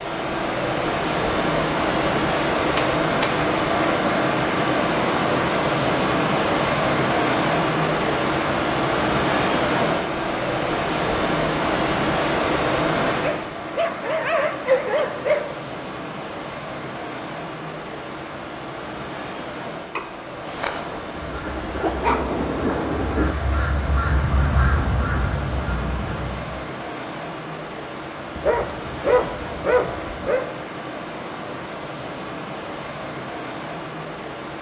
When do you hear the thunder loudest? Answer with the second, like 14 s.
23 s.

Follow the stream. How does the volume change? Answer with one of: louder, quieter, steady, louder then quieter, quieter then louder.
quieter.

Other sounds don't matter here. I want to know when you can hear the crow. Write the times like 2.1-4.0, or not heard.
20.4-26.6.